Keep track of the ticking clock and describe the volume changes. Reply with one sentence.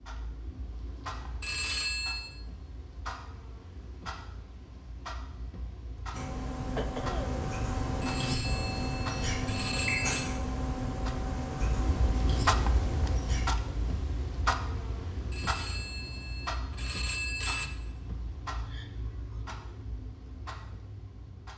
The loudness of the ticking clock goes up, then down.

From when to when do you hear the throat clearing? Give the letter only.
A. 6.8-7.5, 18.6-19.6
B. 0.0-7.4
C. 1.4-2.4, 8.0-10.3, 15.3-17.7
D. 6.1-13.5
A.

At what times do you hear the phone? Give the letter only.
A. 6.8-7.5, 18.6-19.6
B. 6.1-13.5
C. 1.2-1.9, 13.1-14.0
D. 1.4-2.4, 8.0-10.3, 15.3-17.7
D.